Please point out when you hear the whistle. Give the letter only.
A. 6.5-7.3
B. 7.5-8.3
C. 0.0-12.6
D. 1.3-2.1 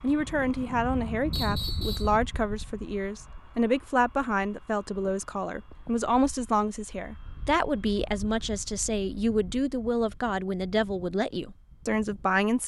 D.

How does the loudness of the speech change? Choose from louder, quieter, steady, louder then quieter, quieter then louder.
steady.